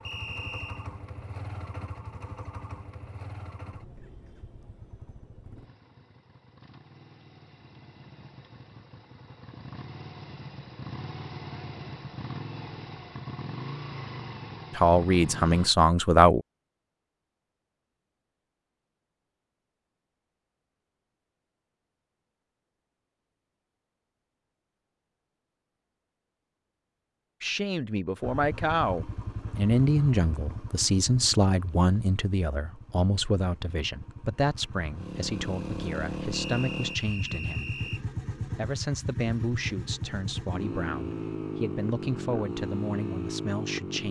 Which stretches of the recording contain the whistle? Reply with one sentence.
You can hear the whistle from 0.0 to 0.8 s and from 36.3 to 38.0 s.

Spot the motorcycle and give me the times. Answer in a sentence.
The motorcycle can be heard from 0.0 to 15.7 s and from 28.2 to 44.0 s.